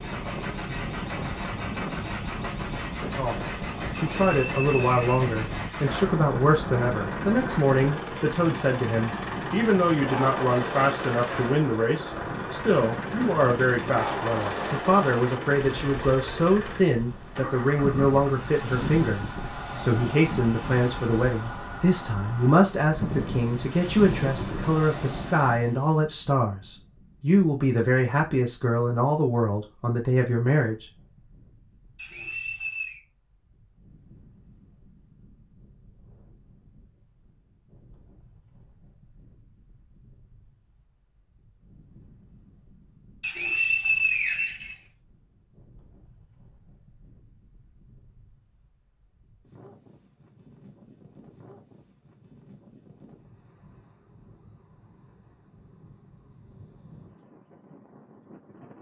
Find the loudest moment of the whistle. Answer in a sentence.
The volume of the whistle peaks at 44 seconds.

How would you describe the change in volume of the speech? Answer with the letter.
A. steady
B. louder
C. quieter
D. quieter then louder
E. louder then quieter
A.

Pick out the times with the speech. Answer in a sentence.
The speech can be heard from 3.0 to 30.9 s.